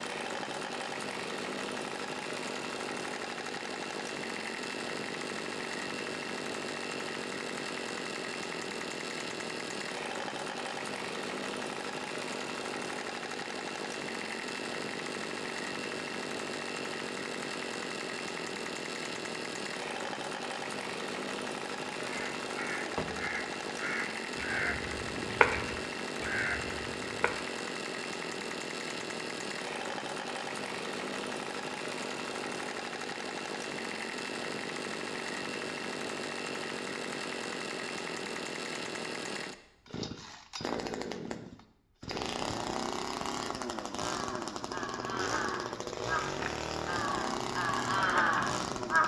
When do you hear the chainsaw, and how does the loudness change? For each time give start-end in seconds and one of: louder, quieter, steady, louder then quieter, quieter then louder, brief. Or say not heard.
0.0-49.0 steady.